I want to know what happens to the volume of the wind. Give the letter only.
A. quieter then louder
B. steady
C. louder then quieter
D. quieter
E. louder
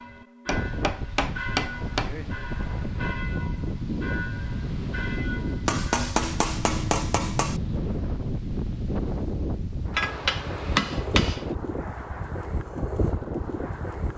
B.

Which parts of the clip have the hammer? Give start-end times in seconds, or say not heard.
0.5-2.3, 5.7-7.6, 9.9-11.6.